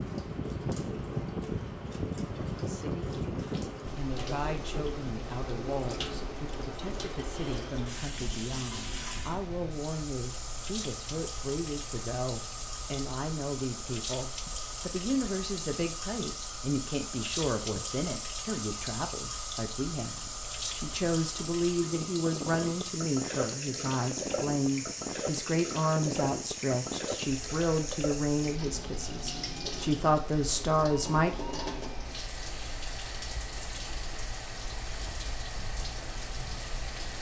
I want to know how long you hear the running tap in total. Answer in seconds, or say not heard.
37 s.